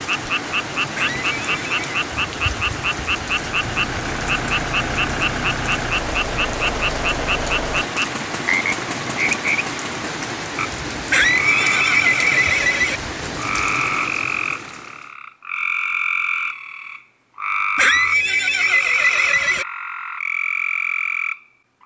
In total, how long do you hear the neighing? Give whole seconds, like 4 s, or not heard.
5 s.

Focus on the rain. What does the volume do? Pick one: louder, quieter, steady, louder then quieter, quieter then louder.
steady.